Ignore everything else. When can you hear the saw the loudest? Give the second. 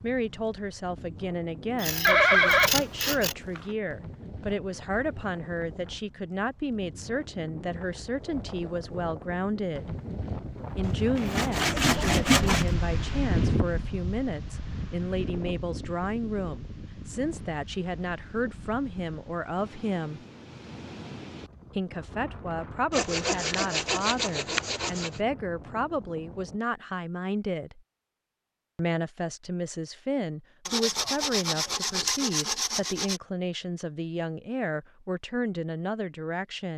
12 s.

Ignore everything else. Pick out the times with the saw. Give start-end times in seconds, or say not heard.
1.8-3.4, 10.8-12.8, 22.9-25.2, 30.6-33.2.